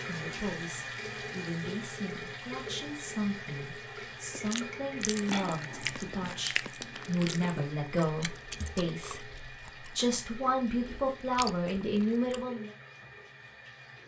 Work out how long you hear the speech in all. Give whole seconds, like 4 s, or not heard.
13 s.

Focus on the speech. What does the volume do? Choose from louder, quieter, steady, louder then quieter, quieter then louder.
louder.